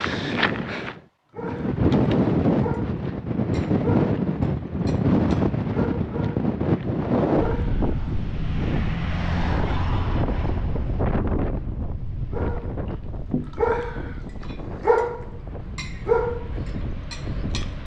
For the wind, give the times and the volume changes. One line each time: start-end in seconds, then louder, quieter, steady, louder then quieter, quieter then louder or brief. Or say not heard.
0.0-17.8 quieter.